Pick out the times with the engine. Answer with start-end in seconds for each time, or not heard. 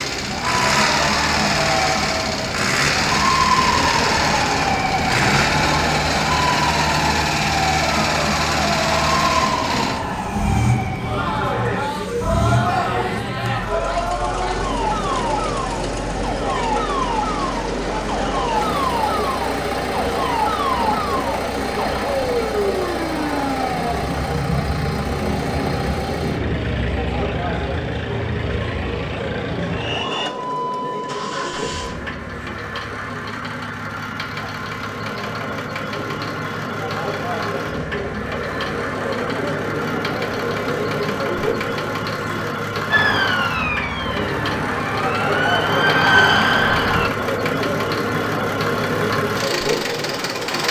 0.0-50.6.